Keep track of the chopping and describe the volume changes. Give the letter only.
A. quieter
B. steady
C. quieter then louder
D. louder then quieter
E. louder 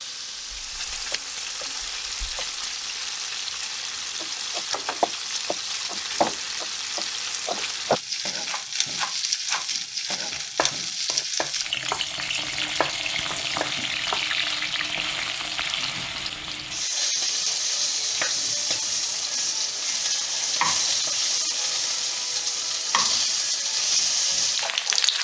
A.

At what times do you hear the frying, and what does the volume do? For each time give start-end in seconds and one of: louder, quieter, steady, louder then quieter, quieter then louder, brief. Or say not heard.
0.0-25.2 louder.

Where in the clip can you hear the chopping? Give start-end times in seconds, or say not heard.
4.2-14.2.